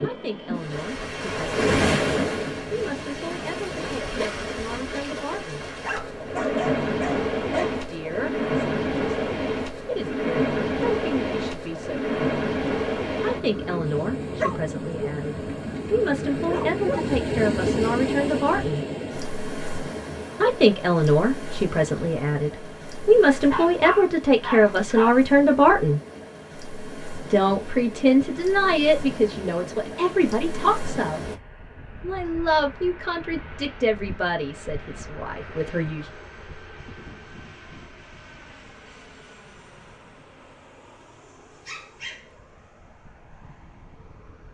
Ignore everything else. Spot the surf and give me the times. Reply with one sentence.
You can hear the surf from 0.0 to 31.4 s.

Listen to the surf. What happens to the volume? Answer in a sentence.
The loudness of the surf goes down.